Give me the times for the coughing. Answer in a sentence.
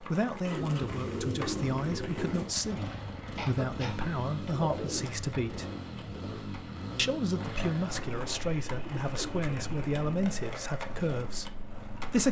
You can hear the coughing from 3.4 to 4.2 s.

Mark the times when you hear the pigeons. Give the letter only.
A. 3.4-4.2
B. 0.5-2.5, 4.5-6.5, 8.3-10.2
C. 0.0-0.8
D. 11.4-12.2
B.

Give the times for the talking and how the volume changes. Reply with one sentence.
You can hear the talking from 0.0 to 5.7 s, at a steady volume; and from 7.0 to 12.2 s, at a steady volume.